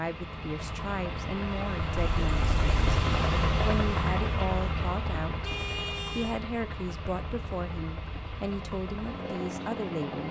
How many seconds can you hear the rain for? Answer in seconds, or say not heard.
10 s.